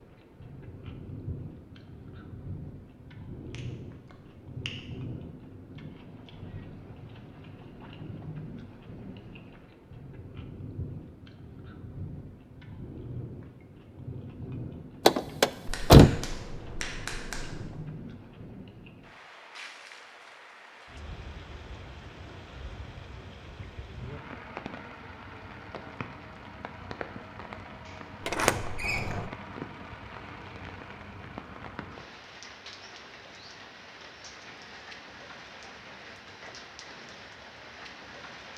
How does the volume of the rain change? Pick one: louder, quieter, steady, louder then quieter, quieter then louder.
steady.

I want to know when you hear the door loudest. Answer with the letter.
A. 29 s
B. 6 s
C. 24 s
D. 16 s
D.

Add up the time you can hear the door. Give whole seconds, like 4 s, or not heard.
2 s.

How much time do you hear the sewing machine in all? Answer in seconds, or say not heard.
not heard.